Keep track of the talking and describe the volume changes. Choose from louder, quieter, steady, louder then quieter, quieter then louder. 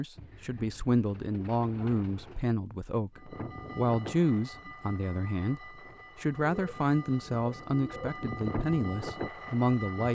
steady.